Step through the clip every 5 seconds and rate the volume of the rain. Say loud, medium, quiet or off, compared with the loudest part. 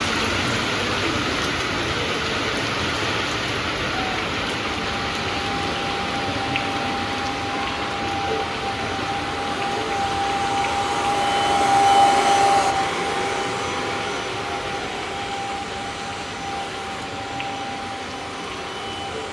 loud, loud, medium, medium.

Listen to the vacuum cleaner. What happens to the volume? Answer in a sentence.
The volume of the vacuum cleaner goes up, then down.